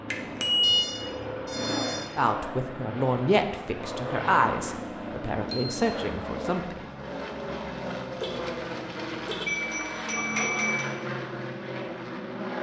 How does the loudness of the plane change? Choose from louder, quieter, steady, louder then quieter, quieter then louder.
steady.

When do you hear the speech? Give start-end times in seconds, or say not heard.
2.1-6.8.